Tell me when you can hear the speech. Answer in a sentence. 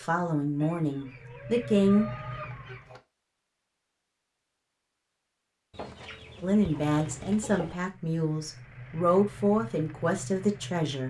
You can hear the speech from 0.0 to 2.1 s and from 6.4 to 11.0 s.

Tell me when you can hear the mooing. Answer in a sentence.
You can't hear the mooing here.